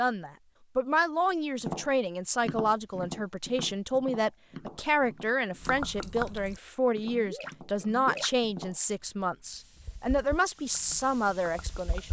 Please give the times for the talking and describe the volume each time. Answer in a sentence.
You can hear the talking from 0.0 to 12.0 s, at a steady volume.